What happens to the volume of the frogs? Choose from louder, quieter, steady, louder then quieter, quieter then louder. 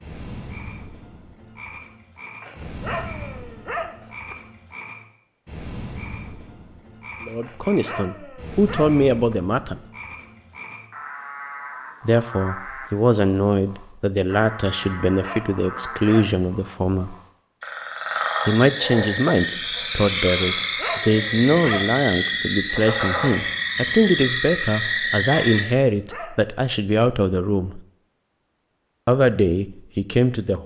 louder.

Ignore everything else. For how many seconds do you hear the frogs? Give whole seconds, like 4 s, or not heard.
26 s.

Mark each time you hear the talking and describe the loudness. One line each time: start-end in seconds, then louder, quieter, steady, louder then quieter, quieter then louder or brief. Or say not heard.
7.2-9.8 brief
12.0-17.1 steady
18.4-27.8 steady
29.1-30.6 brief.